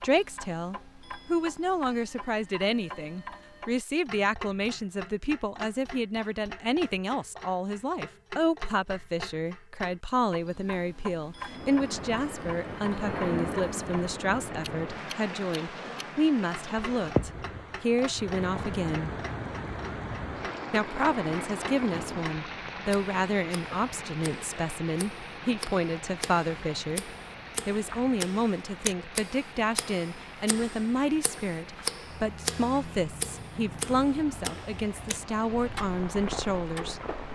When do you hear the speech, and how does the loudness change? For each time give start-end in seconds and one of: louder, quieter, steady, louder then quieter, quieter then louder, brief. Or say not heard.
0.0-19.1 steady
20.7-27.1 steady
27.6-37.1 steady.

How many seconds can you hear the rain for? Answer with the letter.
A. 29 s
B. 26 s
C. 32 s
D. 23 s
B.